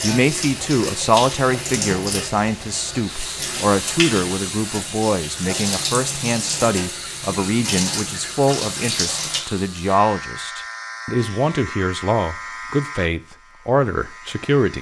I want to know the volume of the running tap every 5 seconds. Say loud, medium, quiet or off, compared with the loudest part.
loud, loud, off.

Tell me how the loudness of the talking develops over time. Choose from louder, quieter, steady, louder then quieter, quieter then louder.
steady.